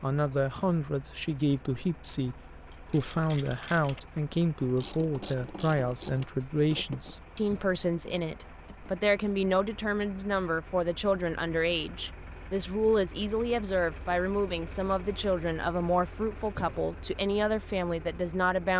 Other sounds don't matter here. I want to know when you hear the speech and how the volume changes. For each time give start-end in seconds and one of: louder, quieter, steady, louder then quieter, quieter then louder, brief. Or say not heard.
0.0-18.7 steady.